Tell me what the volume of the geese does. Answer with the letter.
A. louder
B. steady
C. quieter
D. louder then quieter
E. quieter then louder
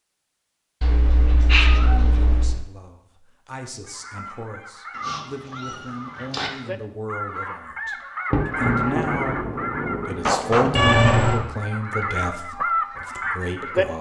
A.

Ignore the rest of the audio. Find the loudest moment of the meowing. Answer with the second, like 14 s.
11 s.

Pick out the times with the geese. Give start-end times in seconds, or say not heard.
3.9-13.8.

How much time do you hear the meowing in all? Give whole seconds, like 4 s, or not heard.
4 s.